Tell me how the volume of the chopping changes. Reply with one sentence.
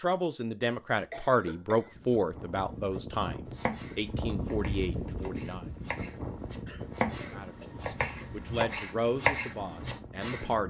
The volume of the chopping goes up.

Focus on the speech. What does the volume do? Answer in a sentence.
The loudness of the speech goes down.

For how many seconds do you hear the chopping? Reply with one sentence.
The chopping can be heard for 7 seconds in total.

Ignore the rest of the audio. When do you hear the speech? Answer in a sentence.
You can hear the speech from 0.0 to 5.7 s and from 7.3 to 10.6 s.